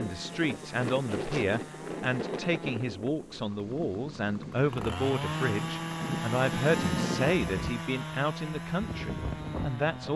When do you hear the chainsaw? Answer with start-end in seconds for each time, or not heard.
0.0-10.1.